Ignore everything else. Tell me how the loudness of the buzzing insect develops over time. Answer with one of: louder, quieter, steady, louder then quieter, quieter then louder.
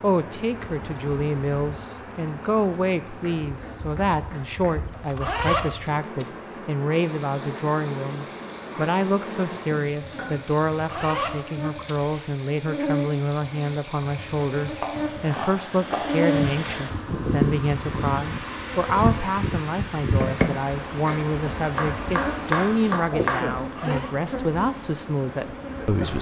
louder then quieter.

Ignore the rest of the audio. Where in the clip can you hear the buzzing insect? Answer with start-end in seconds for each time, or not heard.
0.0-26.1.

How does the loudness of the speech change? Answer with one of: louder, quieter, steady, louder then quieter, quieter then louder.
steady.